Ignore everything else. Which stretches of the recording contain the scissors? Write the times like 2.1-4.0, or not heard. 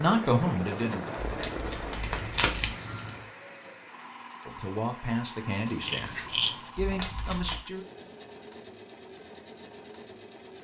1.9-3.2, 5.7-6.8.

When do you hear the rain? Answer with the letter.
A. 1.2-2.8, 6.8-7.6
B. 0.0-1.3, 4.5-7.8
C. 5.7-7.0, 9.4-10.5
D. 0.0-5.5
D.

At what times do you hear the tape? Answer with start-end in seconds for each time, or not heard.
1.2-2.8, 6.8-7.6.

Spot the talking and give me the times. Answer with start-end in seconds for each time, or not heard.
0.0-1.3, 4.5-7.8.